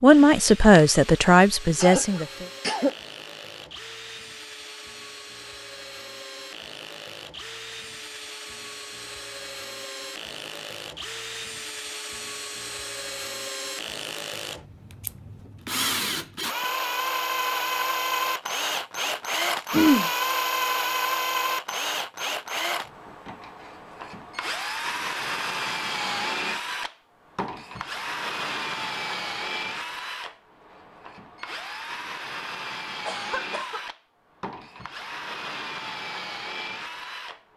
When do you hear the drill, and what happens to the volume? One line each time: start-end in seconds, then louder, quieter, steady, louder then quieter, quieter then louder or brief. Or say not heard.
0.0-37.5 louder then quieter.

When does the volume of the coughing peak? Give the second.
20 s.